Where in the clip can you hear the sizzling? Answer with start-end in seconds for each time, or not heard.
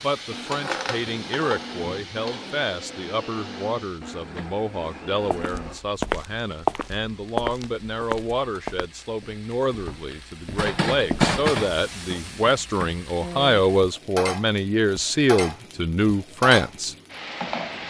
0.0-17.8.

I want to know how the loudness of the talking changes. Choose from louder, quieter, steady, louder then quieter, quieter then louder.
louder.